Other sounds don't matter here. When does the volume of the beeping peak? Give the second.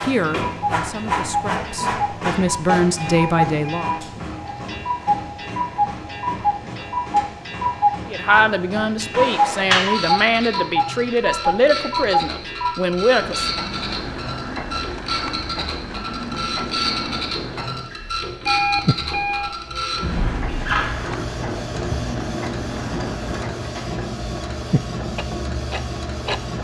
19 s.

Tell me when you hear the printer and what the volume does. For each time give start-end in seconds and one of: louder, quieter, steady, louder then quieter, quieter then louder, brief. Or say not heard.
0.0-26.5 steady.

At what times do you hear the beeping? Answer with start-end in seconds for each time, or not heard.
3.0-4.2, 18.4-19.6.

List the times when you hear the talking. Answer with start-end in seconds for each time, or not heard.
0.0-3.9, 8.1-13.5.